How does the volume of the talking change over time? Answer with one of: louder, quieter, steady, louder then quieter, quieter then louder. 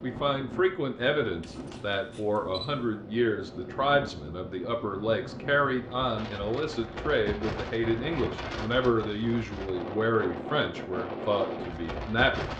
steady.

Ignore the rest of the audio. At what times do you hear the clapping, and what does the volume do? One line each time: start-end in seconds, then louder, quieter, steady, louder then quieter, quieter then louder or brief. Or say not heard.
not heard.